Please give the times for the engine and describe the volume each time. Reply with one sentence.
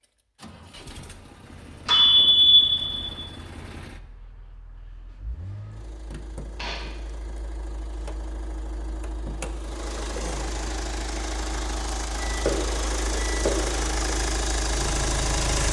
The engine can be heard from 0.1 to 15.6 s, getting louder.